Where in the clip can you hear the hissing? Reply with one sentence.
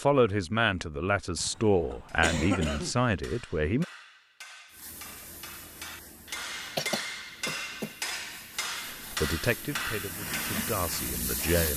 You can hear the hissing from 4.7 to 11.7 s.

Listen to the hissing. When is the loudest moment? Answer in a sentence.
The loudest moment of the hissing is at 11 seconds.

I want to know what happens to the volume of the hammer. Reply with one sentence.
The volume of the hammer goes up.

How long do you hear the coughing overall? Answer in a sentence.
You can hear the coughing for 3 seconds altogether.